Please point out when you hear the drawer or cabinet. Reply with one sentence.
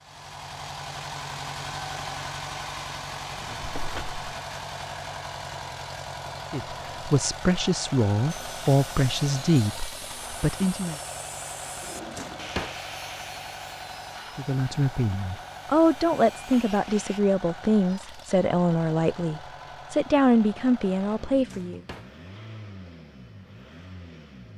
You can hear the drawer or cabinet from 3.3 to 4.2 s, from 11.8 to 12.8 s and from 21.3 to 22.1 s.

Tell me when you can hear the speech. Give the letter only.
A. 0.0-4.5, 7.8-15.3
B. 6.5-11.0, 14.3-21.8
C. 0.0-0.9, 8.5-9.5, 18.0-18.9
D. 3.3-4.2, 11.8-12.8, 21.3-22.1
B.